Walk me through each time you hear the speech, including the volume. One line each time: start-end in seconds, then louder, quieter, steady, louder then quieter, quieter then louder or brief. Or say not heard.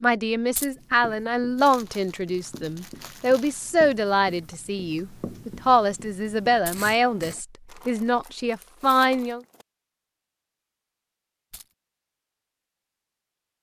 0.0-9.4 steady.